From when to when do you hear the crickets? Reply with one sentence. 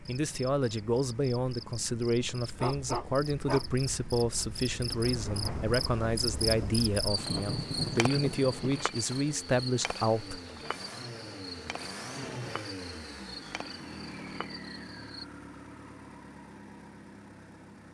You can hear the crickets from 0.0 to 15.2 s.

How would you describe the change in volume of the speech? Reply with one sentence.
The volume of the speech stays about the same.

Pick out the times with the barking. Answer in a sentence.
You can hear the barking from 2.5 to 3.6 s.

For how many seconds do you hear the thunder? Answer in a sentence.
You can hear the thunder for 4 seconds altogether.